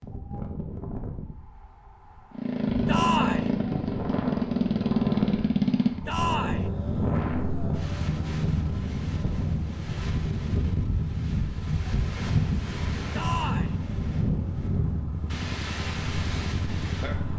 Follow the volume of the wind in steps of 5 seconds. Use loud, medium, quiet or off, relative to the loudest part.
medium, loud, loud, medium.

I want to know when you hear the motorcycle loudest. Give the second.
5 s.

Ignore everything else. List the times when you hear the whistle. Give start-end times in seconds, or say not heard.
not heard.